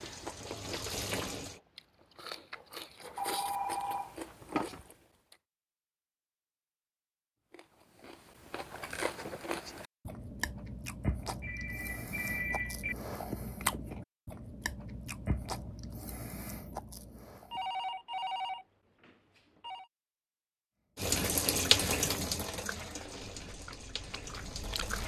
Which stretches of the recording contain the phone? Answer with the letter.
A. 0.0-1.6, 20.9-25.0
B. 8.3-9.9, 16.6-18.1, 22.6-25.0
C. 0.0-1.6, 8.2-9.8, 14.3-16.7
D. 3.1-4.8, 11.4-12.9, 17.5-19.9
D.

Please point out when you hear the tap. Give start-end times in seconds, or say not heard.
0.0-1.6, 20.9-25.0.